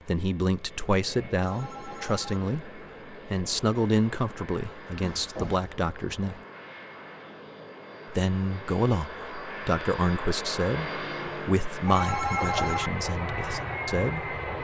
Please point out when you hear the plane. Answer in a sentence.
The plane can be heard from 0.0 to 14.6 s.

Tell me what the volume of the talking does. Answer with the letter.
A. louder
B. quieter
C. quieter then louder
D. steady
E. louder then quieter
D.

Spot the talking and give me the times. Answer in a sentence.
The talking can be heard from 0.1 to 6.4 s and from 8.1 to 14.3 s.